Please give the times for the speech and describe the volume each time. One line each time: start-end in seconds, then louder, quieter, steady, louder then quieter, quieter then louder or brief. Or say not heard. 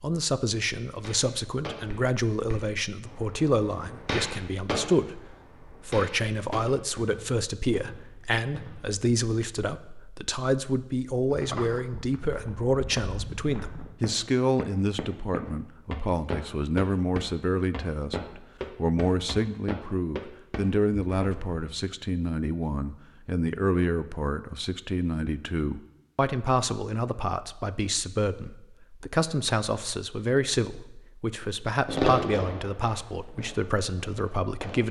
0.0-34.8 steady.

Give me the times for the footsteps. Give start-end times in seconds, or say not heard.
11.3-21.7.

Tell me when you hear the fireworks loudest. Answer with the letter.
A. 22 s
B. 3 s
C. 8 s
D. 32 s
D.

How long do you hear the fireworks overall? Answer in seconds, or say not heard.
11 s.